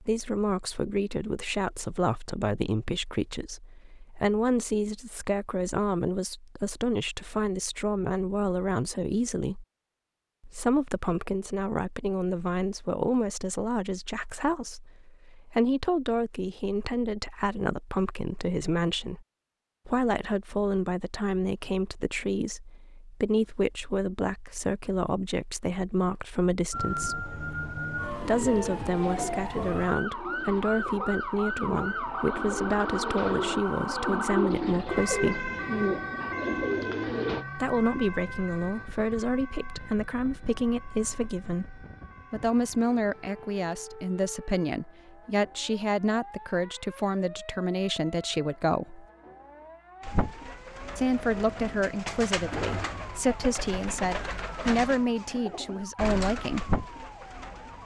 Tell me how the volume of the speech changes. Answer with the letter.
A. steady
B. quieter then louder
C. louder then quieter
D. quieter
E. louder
A.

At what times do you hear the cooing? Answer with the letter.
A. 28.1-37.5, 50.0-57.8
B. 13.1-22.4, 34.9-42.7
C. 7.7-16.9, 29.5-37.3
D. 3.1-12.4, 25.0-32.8
A.